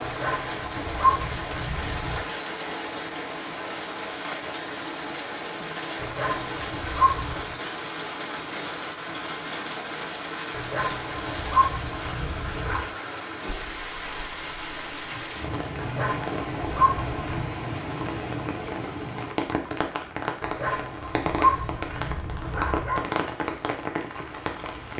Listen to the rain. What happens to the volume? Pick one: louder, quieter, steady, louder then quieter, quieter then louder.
steady.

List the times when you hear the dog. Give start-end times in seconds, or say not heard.
0.0-2.2, 6.0-7.5, 10.5-12.8, 15.8-17.5, 20.4-23.1.